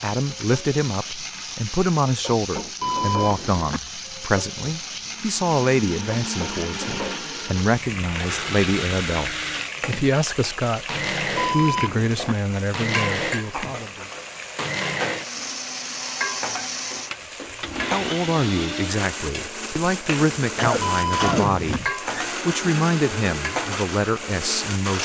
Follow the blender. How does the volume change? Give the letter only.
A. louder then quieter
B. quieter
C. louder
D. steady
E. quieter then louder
D.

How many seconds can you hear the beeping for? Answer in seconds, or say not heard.
3 s.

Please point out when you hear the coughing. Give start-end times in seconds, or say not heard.
20.4-21.9.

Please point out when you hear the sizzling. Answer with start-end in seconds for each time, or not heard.
0.0-25.0.